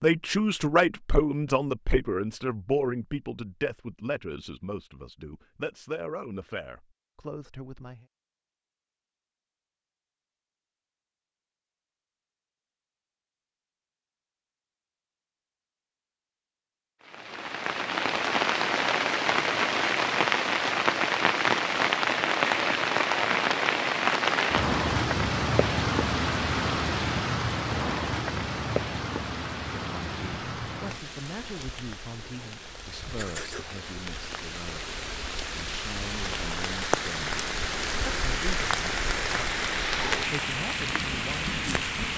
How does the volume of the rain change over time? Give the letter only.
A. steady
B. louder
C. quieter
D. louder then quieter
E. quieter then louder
E.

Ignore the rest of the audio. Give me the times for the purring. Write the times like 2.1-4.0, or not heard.
not heard.